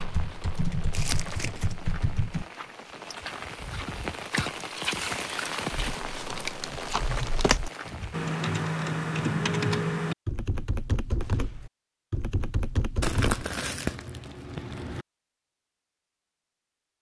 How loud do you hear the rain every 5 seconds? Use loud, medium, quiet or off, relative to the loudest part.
loud, loud, off, off.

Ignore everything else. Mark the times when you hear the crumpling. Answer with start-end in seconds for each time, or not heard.
0.9-1.8, 6.0-7.6, 13.0-15.1.